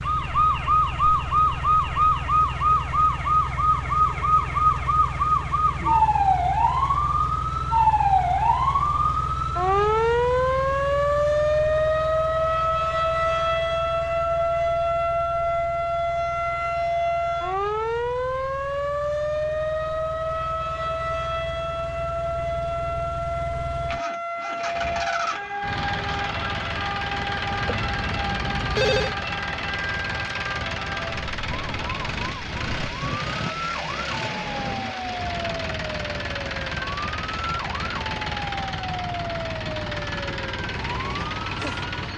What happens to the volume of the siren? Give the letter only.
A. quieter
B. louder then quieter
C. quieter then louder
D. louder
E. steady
A.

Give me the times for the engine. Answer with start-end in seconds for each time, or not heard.
0.0-42.1.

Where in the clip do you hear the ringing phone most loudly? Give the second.
29 s.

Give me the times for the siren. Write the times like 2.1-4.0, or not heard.
0.0-42.1.